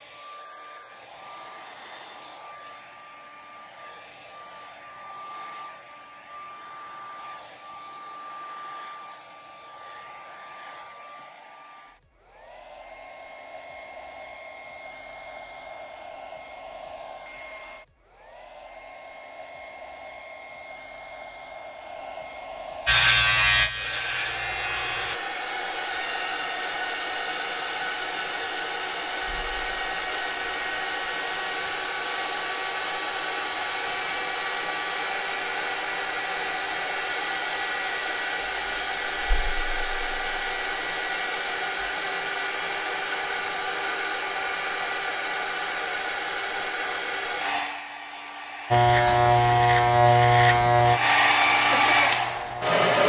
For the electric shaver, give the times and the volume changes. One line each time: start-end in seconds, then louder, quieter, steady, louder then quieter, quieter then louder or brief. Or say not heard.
22.9-25.2 brief
48.7-52.9 quieter.